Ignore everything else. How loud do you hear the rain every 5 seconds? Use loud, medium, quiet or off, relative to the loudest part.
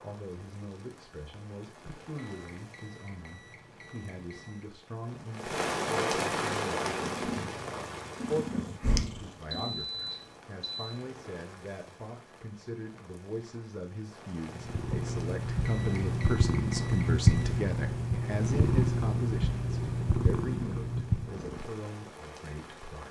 quiet, loud, quiet, quiet, quiet.